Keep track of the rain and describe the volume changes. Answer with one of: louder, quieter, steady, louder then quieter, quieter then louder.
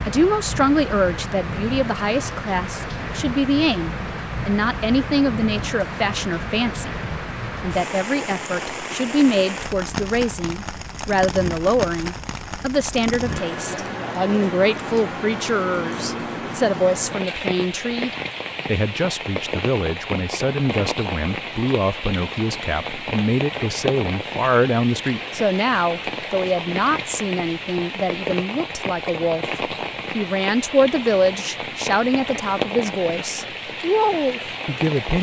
steady.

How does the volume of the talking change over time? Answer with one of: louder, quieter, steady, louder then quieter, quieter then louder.
steady.